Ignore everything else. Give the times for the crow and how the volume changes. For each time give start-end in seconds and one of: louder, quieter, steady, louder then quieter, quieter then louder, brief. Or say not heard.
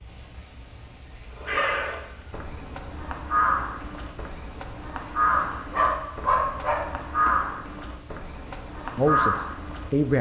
1.4-10.1 louder.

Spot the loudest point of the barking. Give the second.
6 s.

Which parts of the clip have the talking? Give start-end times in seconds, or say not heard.
8.9-10.1.